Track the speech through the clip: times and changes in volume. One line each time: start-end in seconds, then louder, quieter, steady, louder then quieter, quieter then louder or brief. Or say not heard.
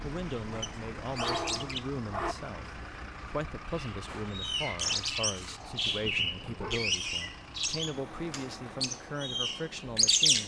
0.0-10.4 steady.